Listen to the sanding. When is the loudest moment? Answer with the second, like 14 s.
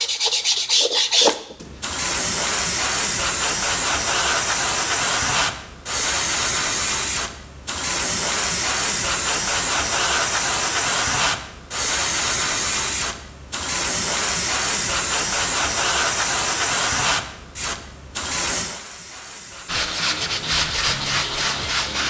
1 s.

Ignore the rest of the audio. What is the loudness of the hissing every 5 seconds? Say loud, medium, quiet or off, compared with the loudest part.
loud, loud, loud, loud, off.